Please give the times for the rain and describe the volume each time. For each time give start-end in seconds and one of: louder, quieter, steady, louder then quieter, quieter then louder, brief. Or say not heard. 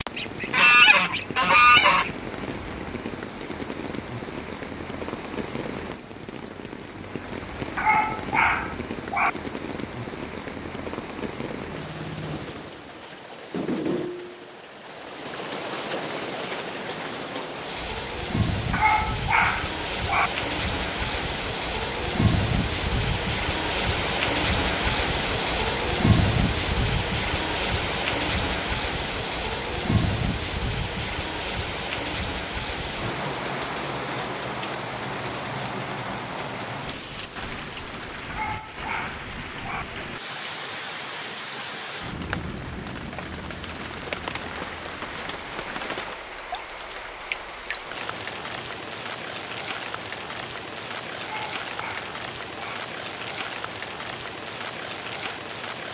0.0-55.9 louder then quieter.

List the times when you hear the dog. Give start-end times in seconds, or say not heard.
7.8-9.3, 18.7-20.3, 38.2-39.9, 51.2-52.8.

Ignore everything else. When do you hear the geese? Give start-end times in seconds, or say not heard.
0.1-2.1.